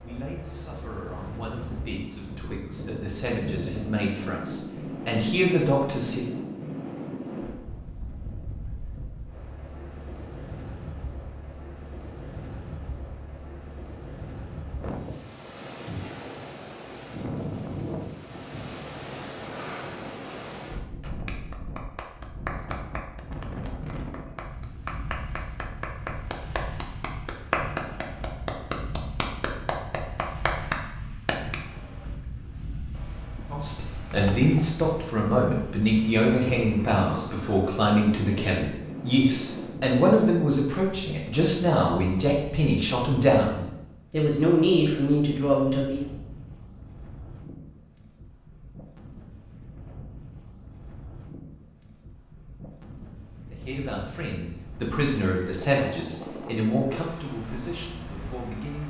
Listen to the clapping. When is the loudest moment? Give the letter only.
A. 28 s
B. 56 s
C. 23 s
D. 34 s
A.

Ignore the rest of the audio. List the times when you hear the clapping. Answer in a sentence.
The clapping can be heard from 21.0 to 31.6 s.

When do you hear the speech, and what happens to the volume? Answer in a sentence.
You can hear the speech from 0.0 to 6.3 s, getting louder; from 33.5 to 46.0 s, at a steady volume; and from 53.5 to 58.8 s, getting louder then quieter.